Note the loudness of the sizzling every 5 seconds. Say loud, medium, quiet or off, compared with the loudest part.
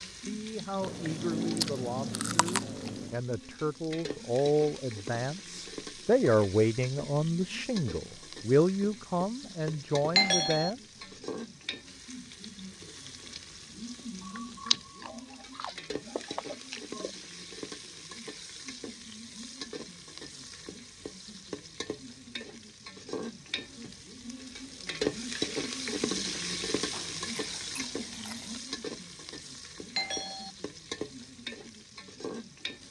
medium, medium, medium, medium, medium, loud, medium.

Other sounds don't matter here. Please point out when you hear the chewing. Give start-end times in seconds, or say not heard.
0.8-3.1, 14.2-17.1, 26.9-28.6.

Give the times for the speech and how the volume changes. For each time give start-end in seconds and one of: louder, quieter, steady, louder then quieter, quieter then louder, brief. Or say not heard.
0.1-11.0 louder.